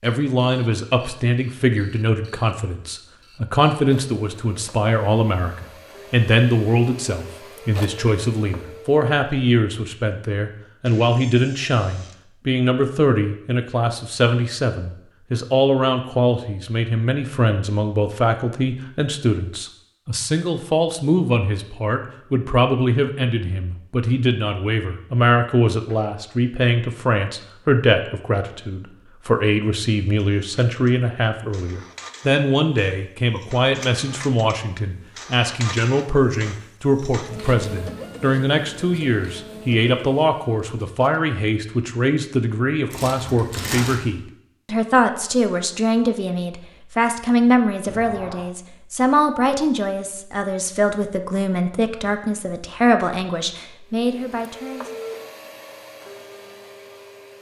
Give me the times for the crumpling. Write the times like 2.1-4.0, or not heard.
42.9-44.0.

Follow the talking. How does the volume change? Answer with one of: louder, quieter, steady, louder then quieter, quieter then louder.
steady.